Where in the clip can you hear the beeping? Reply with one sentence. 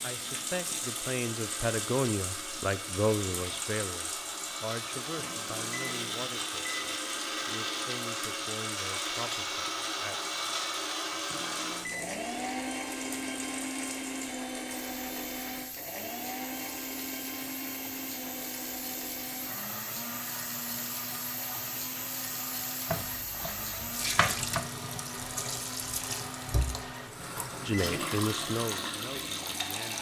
You can hear the beeping from 5.2 to 7.0 s, from 11.3 to 12.2 s and from 27.1 to 27.9 s.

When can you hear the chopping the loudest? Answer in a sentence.
The loudest moment of the chopping is at 24 seconds.